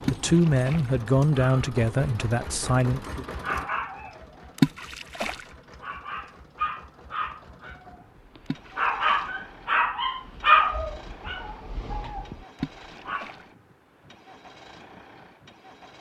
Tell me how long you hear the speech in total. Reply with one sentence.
You can hear the speech for 3 seconds altogether.